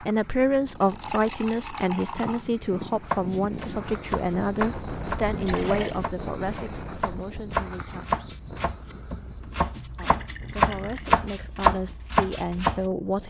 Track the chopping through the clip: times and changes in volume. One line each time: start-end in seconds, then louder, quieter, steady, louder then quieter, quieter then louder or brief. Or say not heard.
3.0-12.8 quieter then louder.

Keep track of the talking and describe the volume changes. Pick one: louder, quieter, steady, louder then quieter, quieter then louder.
quieter then louder.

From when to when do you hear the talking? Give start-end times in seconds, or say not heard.
0.0-8.2, 9.9-13.2.